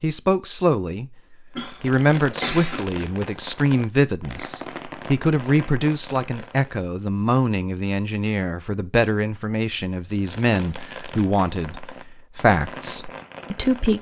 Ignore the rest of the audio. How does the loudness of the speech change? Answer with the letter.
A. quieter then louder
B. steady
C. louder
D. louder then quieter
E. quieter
B.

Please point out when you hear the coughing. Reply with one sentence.
You can hear the coughing from 1.6 to 2.9 s.